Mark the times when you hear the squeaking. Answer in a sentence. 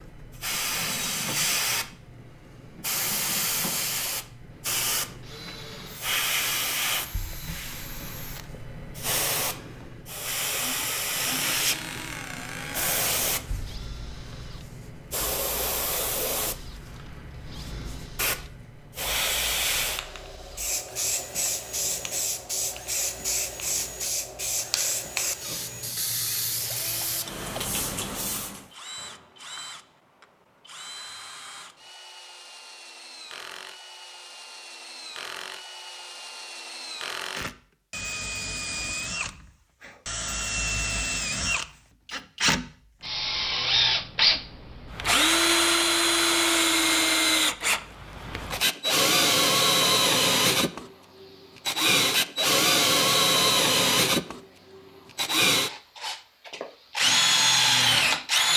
The squeaking can be heard from 11.1 to 13.2 s.